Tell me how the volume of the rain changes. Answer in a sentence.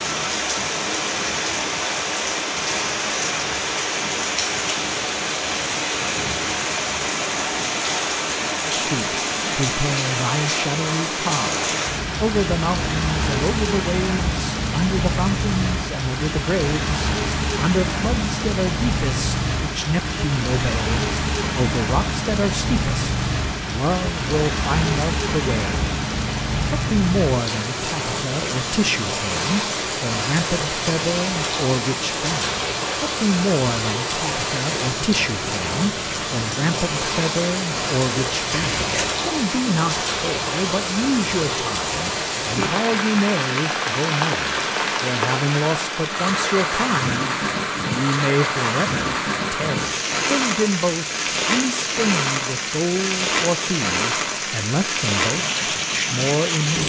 The volume of the rain stays about the same.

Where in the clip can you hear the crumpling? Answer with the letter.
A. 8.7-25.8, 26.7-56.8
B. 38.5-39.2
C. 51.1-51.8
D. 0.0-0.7
B.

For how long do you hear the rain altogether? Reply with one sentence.
You can hear the rain for 57 seconds altogether.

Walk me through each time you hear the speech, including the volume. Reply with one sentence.
You can hear the speech from 8.7 to 25.8 s, at a steady volume; and from 26.7 to 56.8 s, at a steady volume.